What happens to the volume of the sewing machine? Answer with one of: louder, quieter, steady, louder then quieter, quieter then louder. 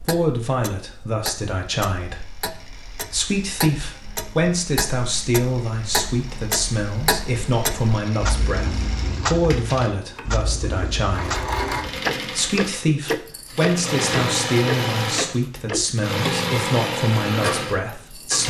louder.